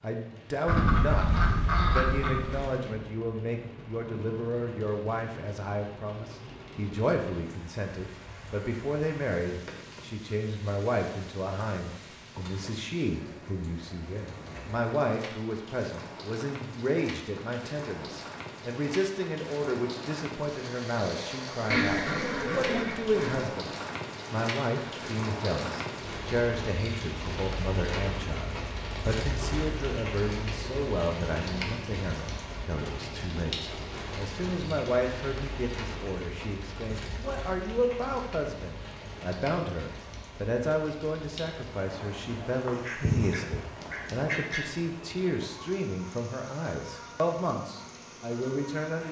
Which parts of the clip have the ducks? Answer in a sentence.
The ducks can be heard from 0.7 to 2.7 s, from 21.7 to 23.5 s and from 42.6 to 44.6 s.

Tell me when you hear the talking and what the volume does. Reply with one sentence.
The talking can be heard from 0.0 to 49.0 s, at a steady volume.